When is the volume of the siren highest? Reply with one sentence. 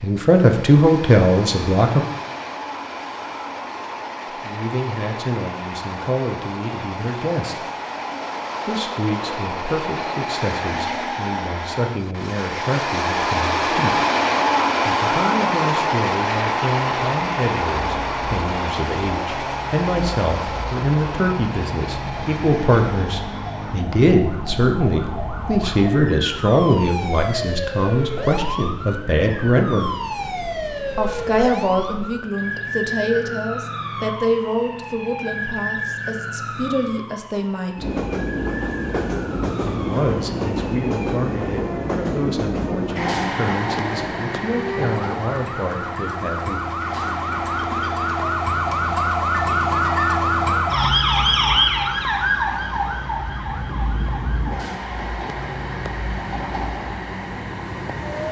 The loudest moment of the siren is at 51 seconds.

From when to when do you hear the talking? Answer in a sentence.
The talking can be heard from 0.0 to 2.0 s, from 4.4 to 7.7 s, from 8.7 to 14.0 s, from 14.8 to 29.9 s, from 30.9 to 38.0 s and from 39.7 to 46.6 s.